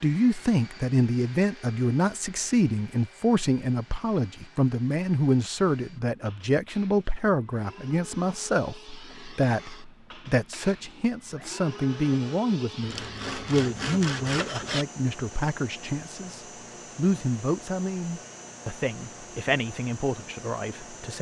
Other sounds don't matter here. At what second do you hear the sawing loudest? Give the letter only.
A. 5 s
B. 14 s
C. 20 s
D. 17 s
B.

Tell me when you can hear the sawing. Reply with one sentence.
The sawing can be heard from 12.8 to 14.8 s.